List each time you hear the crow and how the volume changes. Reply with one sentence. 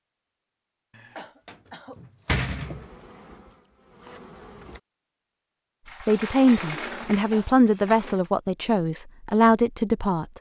You can't hear the crow here.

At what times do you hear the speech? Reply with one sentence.
The speech can be heard from 6.0 to 10.3 s.